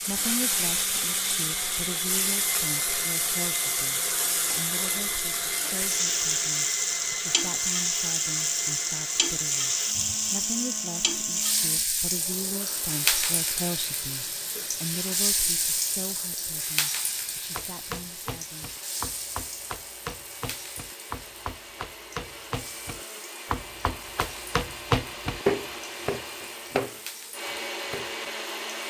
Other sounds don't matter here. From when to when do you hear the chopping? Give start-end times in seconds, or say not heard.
17.5-28.3.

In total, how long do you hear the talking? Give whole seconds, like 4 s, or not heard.
19 s.